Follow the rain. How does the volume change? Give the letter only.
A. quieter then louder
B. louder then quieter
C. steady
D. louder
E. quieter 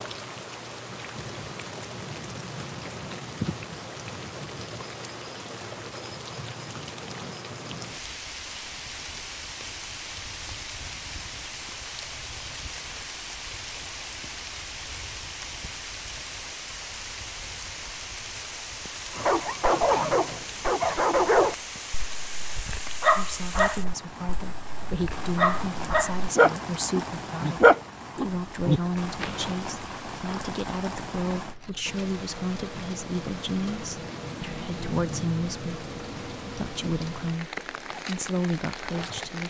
C.